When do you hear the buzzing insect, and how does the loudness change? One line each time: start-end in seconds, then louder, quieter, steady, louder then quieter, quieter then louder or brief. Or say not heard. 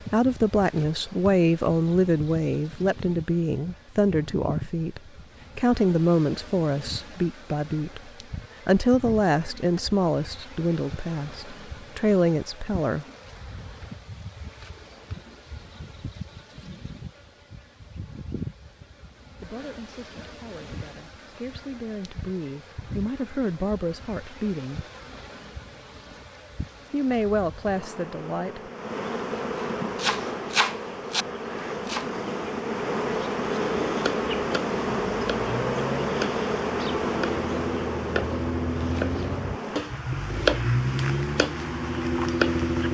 0.0-42.8 louder.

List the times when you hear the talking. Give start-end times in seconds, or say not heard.
0.0-13.1, 19.4-24.8, 26.9-28.7.